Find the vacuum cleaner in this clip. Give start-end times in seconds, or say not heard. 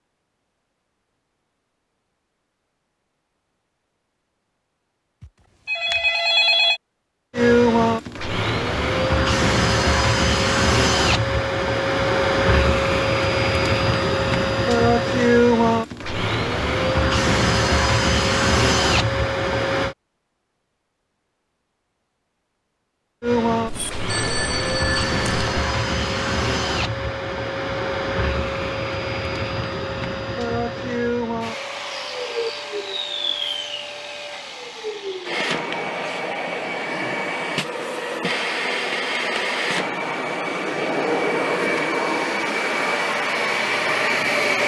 7.3-19.9, 23.2-44.6.